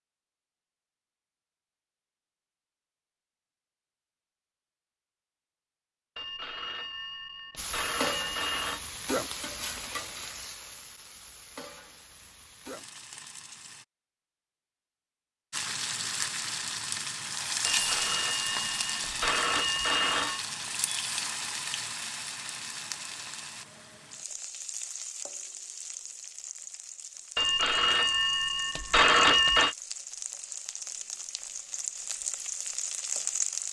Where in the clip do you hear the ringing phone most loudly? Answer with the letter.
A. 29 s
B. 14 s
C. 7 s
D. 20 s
A.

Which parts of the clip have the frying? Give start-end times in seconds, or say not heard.
7.5-13.8, 15.5-33.6.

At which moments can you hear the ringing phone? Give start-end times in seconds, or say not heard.
6.2-8.8, 17.6-20.4, 27.4-29.8.